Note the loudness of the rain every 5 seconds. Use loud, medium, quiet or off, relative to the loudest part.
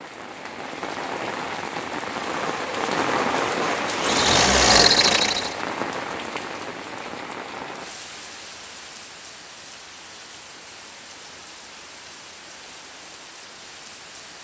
loud, medium, quiet.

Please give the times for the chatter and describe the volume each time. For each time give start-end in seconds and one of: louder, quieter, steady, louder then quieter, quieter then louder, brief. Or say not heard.
not heard.